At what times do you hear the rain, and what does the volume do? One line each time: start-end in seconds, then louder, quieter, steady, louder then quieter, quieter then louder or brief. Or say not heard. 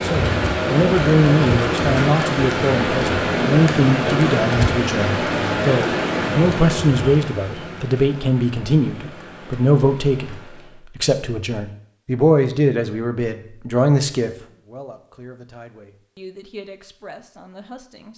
0.0-10.8 quieter.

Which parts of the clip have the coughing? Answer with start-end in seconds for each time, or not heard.
not heard.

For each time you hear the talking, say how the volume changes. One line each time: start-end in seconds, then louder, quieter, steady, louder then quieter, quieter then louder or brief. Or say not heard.
0.0-18.1 quieter.